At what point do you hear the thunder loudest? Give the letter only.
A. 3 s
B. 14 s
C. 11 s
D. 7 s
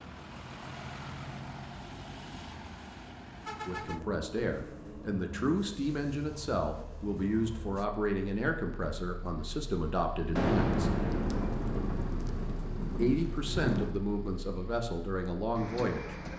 C.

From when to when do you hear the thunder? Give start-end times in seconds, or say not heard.
10.3-13.9.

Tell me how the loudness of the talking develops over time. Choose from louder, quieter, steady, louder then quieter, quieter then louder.
steady.